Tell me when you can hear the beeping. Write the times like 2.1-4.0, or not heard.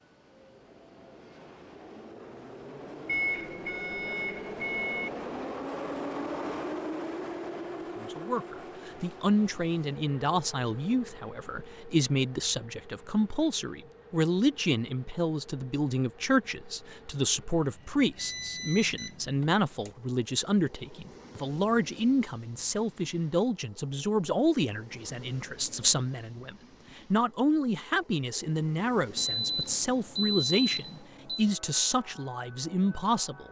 3.0-5.1, 18.1-19.9, 29.1-31.4.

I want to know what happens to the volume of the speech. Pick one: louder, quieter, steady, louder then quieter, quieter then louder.
steady.